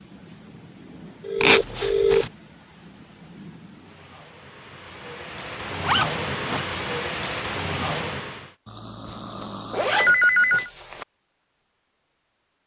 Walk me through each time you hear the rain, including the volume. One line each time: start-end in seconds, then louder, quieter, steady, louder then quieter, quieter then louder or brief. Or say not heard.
0.0-8.6 louder.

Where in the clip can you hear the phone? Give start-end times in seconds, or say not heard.
1.2-2.2, 9.9-10.7.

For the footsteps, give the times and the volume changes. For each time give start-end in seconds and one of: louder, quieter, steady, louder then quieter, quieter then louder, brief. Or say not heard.
not heard.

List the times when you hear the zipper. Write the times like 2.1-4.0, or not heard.
1.4-2.3, 5.8-6.7, 9.1-11.1.